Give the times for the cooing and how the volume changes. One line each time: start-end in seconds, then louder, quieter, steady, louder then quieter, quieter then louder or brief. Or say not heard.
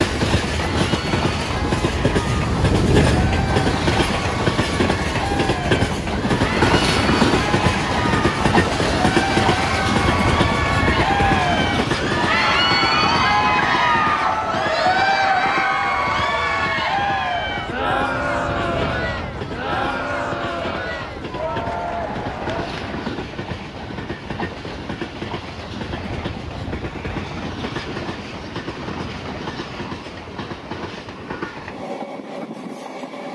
not heard.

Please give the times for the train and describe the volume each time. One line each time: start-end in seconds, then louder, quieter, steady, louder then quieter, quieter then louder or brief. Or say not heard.
0.0-33.3 quieter.